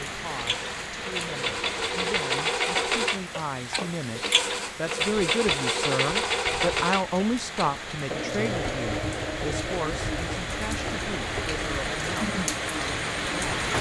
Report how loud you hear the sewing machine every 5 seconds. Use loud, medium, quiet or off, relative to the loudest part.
loud, loud, medium.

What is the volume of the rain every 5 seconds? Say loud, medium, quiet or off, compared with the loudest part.
medium, medium, loud.